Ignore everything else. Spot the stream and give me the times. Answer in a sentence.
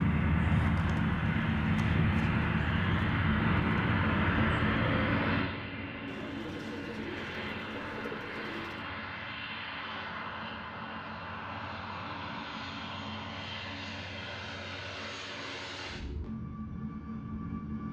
You can't hear the stream here.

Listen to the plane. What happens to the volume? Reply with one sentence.
The loudness of the plane goes down.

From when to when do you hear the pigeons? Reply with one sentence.
You can hear the pigeons from 6.0 to 8.9 s.